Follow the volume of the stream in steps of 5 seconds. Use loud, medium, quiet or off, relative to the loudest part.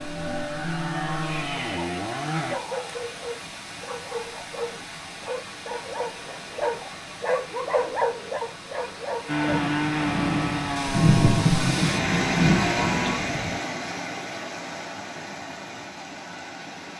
medium, medium, loud, medium.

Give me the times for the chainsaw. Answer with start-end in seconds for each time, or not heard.
0.0-2.6, 9.2-13.2.